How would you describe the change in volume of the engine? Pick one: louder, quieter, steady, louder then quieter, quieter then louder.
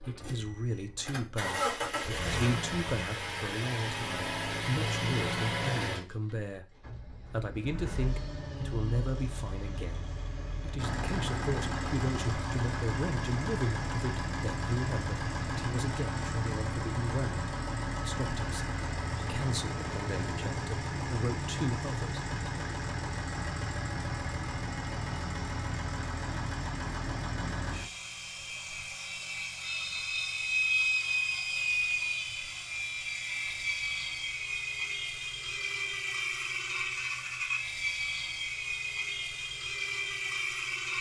steady.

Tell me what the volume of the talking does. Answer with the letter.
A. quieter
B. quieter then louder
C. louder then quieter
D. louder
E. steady
E.